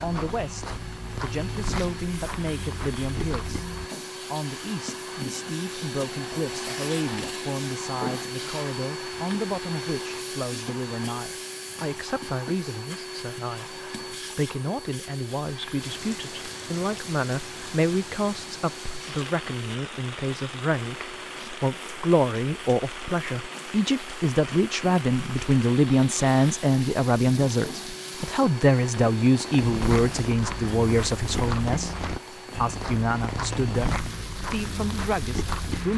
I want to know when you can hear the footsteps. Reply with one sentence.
The footsteps can be heard from 0.0 to 3.9 s and from 29.6 to 35.9 s.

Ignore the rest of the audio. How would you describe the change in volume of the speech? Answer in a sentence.
The loudness of the speech goes up.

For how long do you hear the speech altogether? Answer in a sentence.
You can hear the speech for 35 seconds altogether.